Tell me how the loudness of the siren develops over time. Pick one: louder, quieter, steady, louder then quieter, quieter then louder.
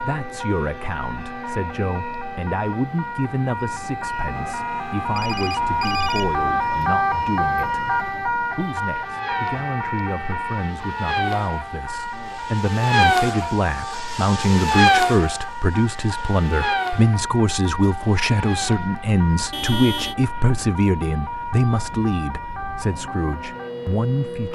louder then quieter.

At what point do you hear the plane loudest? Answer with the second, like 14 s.
15 s.